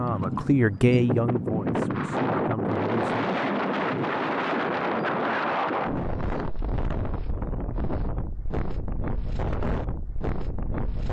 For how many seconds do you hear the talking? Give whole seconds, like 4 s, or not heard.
3 s.